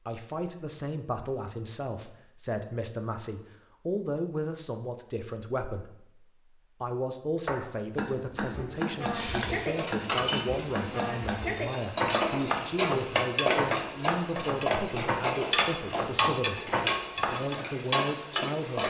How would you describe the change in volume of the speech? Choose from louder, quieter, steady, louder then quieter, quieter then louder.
steady.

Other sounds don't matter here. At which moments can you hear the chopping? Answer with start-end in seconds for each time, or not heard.
7.5-17.4.